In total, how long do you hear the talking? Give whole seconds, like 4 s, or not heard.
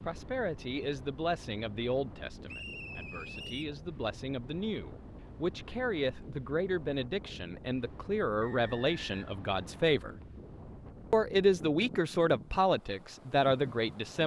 13 s.